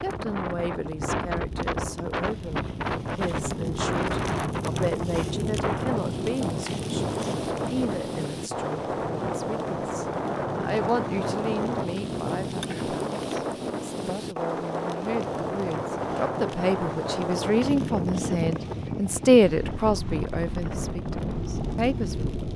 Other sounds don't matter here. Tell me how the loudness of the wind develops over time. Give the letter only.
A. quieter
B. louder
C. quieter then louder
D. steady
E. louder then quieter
D.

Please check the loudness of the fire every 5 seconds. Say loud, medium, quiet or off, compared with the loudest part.
loud, loud, loud, medium, loud.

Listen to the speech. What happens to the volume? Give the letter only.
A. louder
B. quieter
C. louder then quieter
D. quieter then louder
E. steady
A.